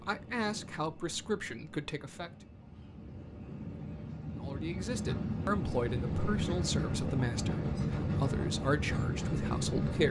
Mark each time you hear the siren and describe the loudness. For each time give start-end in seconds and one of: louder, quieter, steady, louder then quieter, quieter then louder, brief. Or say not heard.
not heard.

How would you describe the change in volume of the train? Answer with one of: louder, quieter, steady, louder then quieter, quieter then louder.
louder.